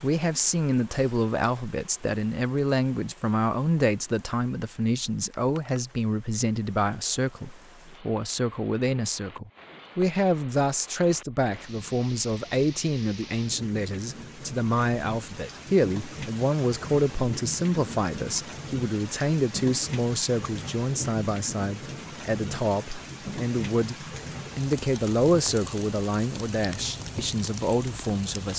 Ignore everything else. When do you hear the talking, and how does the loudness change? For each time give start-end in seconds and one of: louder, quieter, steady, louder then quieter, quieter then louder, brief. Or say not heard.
0.0-28.5 steady.